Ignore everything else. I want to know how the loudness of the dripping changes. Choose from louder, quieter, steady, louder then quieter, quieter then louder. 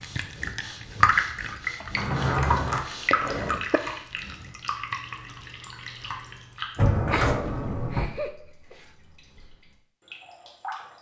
quieter.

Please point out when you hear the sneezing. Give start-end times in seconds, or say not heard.
3.1-3.8, 7.0-8.8.